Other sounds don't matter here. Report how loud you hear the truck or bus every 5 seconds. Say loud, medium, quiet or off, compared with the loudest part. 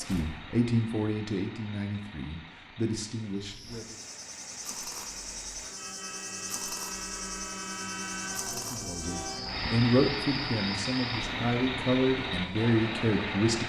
quiet, medium, loud.